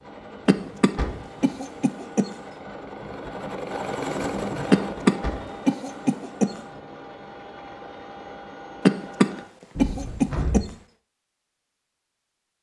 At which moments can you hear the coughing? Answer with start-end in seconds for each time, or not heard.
0.5-2.3, 4.7-6.5, 8.8-10.7.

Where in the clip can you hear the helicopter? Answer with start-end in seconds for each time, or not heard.
0.0-9.4.